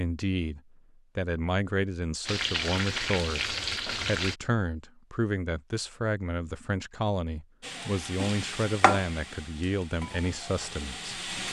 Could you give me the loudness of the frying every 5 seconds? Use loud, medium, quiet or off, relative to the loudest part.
loud, loud, medium.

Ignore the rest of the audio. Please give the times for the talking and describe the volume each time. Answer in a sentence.
You can hear the talking from 0.0 to 11.2 s, at a steady volume.